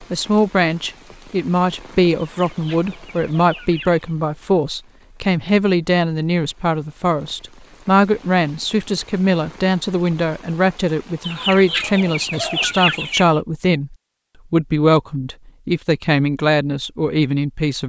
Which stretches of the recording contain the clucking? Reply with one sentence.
The clucking can be heard from 2.2 to 4.0 s and from 11.2 to 13.3 s.